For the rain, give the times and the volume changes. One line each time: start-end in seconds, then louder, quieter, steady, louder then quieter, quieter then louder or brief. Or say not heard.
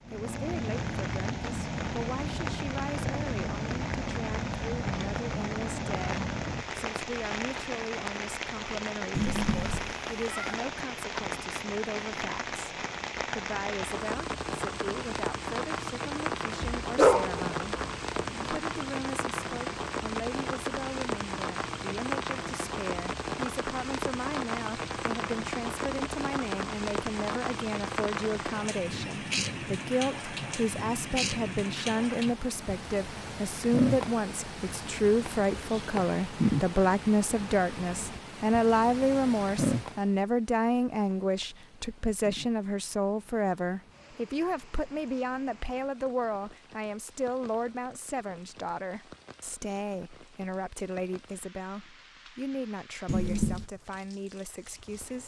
0.0-55.2 quieter.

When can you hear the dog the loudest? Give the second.
17 s.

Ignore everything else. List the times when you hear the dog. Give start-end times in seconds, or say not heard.
16.6-18.6.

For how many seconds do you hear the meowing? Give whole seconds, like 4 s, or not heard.
2 s.